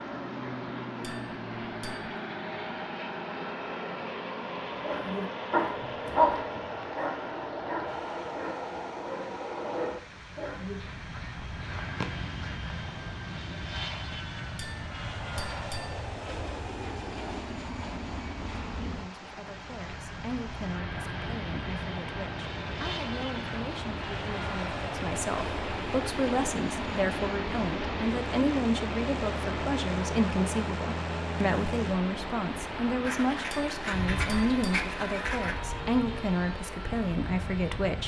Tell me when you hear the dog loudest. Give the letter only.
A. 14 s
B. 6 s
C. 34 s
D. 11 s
B.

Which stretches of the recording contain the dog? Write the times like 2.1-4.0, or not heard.
4.8-10.8.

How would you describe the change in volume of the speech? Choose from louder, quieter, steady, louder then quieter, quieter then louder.
louder.